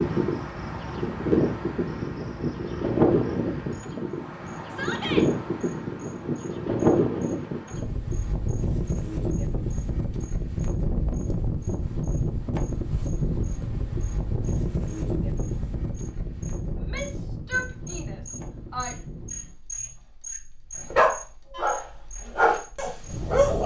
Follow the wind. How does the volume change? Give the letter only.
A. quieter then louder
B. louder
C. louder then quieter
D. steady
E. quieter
E.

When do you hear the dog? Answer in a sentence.
The dog can be heard from 20.9 to 23.6 s.